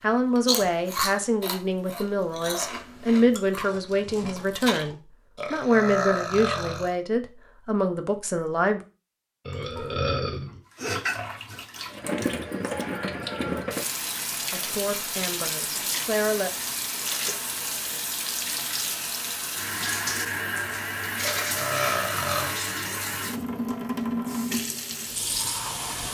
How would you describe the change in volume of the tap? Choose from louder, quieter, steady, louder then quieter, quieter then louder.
steady.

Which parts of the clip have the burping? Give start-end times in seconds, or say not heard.
5.3-7.0, 9.4-10.6, 21.2-22.6.